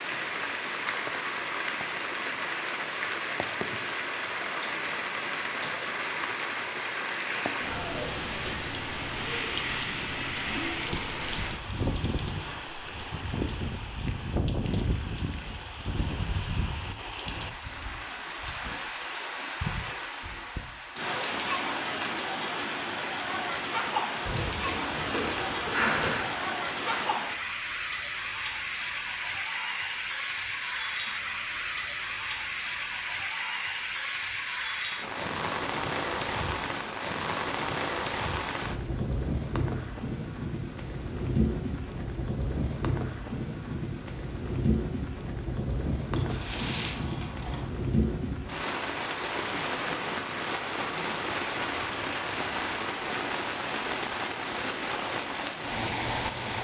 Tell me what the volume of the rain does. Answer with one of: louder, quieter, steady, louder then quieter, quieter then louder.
steady.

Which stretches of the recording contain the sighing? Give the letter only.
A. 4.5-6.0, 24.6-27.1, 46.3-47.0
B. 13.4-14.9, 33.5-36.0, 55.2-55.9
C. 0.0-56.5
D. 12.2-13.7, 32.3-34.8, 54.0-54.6
A.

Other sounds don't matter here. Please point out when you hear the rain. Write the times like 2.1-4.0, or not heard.
0.0-56.5.